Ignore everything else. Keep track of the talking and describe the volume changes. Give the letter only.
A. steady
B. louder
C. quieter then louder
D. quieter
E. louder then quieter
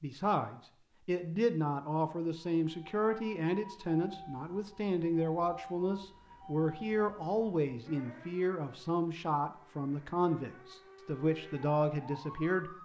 A.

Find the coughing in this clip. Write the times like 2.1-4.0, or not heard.
not heard.